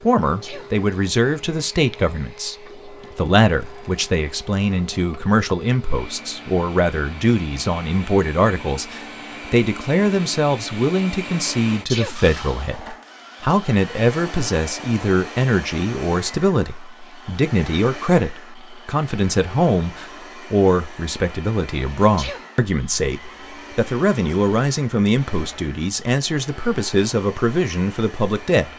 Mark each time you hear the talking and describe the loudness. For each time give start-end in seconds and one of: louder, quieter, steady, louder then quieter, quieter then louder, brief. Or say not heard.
0.0-28.7 steady.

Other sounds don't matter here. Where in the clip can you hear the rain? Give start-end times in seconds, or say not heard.
not heard.